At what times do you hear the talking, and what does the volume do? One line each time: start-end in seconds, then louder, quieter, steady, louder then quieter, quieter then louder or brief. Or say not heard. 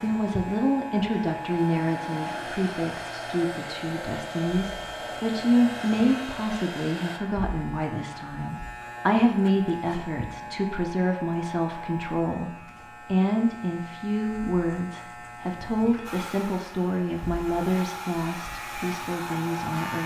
0.0-20.0 steady.